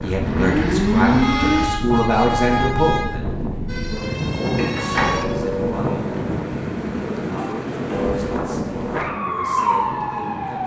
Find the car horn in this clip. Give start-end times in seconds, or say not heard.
1.2-3.1, 7.2-8.2.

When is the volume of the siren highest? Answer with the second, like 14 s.
1 s.